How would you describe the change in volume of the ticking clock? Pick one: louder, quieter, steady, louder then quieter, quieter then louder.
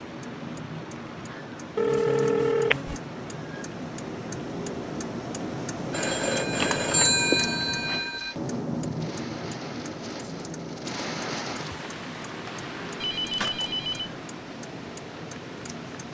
louder then quieter.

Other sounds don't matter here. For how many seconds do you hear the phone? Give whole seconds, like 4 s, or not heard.
5 s.